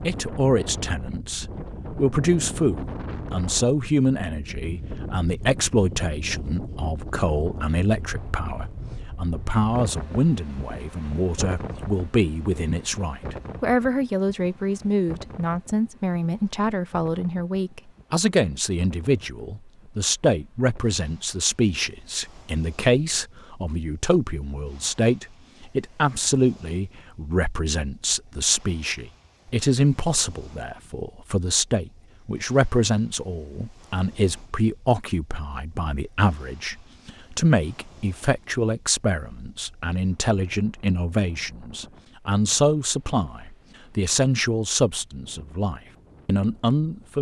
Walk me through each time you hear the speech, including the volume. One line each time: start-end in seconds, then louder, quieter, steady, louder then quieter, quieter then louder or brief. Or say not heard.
0.0-47.1 steady.